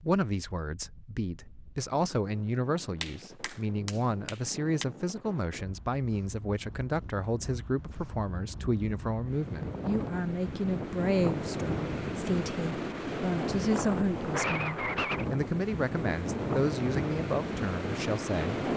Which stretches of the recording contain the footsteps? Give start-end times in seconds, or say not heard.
not heard.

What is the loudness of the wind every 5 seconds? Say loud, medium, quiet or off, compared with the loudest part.
quiet, medium, loud, loud.